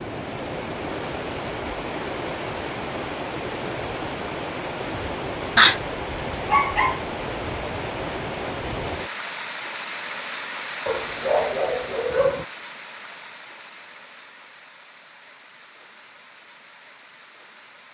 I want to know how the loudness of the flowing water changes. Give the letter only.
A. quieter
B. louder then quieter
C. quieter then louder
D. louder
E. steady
A.